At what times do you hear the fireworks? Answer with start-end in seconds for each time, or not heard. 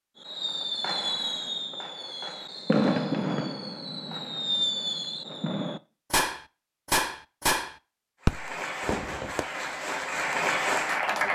0.2-9.4.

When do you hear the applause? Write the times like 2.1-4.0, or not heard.
8.2-11.3.